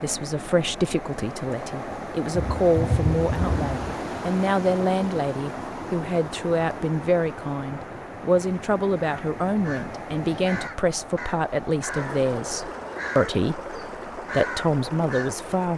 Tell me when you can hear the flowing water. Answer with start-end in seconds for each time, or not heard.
0.0-15.7.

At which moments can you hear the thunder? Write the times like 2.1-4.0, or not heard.
2.3-4.0.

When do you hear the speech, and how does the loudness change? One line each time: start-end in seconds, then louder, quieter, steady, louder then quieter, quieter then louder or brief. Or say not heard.
0.0-15.7 steady.